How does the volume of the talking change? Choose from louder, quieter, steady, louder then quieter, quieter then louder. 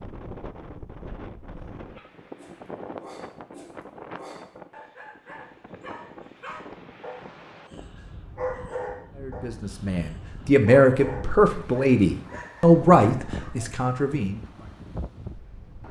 louder then quieter.